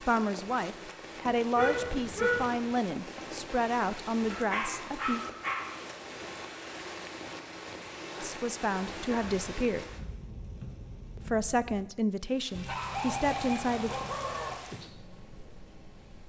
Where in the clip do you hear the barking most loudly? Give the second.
2 s.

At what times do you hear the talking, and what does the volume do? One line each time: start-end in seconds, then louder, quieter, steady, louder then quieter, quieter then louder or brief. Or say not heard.
0.0-5.2 steady
8.2-9.8 brief
11.2-14.1 brief.